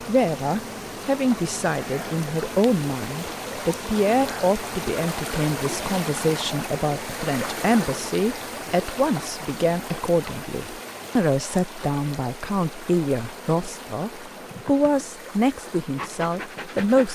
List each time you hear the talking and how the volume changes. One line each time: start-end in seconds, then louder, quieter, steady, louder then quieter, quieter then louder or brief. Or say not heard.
0.0-17.1 steady.